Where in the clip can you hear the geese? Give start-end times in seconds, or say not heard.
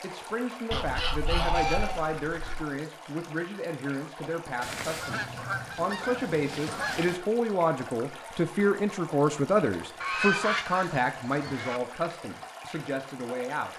0.7-2.6, 4.6-7.2, 10.0-11.8.